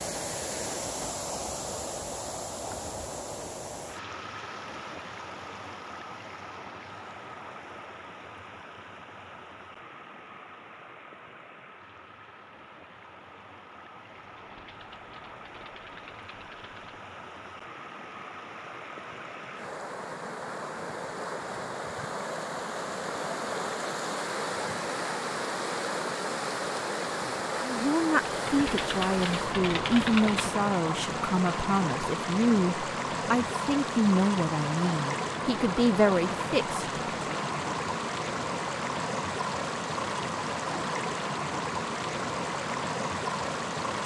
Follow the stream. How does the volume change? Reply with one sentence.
The loudness of the stream goes down, then up.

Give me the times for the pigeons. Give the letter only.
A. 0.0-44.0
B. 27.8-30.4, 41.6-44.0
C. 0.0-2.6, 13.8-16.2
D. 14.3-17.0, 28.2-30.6
D.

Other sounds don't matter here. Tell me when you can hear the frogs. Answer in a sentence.
You can't hear the frogs here.